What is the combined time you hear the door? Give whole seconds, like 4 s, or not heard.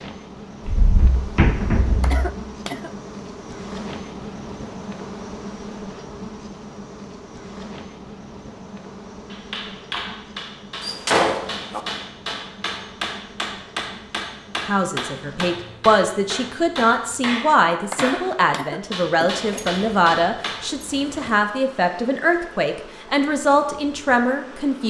5 s.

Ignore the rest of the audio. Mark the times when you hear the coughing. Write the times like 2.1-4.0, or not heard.
2.0-2.9, 17.9-19.9.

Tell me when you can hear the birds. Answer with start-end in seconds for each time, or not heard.
not heard.